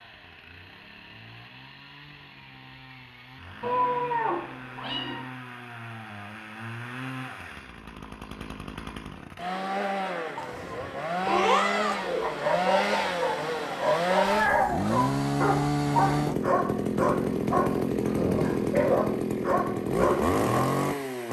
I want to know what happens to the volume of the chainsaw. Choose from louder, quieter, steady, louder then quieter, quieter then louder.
louder.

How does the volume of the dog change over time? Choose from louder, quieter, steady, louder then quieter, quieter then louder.
steady.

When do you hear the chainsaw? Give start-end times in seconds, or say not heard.
0.0-21.2.